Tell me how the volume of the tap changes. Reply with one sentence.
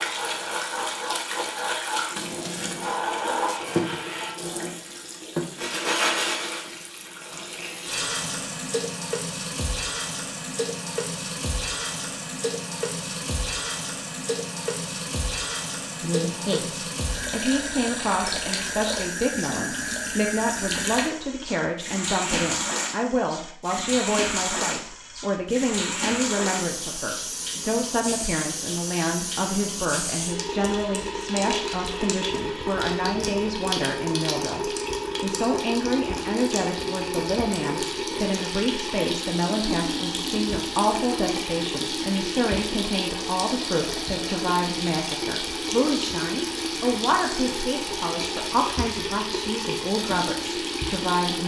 The loudness of the tap stays about the same.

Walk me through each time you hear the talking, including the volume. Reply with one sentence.
You can hear the talking from 16.0 to 51.4 s, at a steady volume.